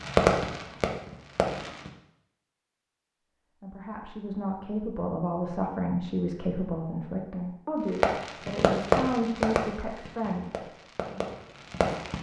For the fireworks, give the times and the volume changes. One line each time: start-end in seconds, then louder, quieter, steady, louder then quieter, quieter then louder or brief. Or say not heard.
0.0-1.9 brief
8.0-12.1 quieter then louder.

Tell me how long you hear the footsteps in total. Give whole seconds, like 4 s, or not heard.
not heard.